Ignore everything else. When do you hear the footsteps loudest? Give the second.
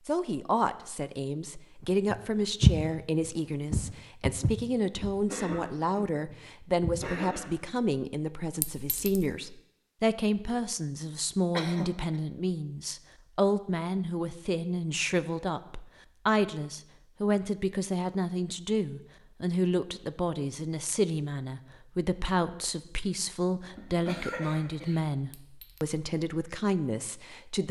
3 s.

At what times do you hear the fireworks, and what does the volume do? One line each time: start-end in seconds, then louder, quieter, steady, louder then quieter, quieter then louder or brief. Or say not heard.
not heard.